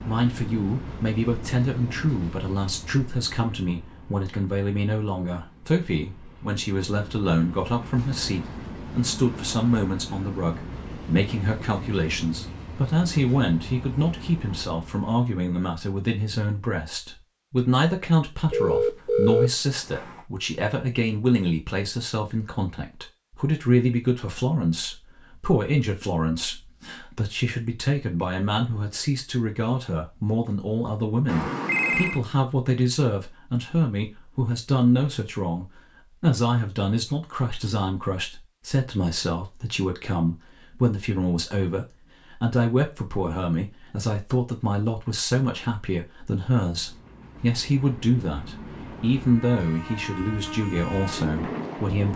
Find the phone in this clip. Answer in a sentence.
The phone can be heard from 18.5 to 20.2 s and from 31.2 to 32.2 s.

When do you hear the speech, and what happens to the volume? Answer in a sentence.
You can hear the speech from 0.0 to 52.1 s, at a steady volume.